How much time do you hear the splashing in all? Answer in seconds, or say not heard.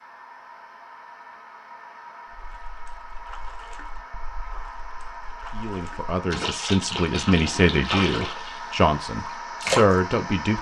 8 s.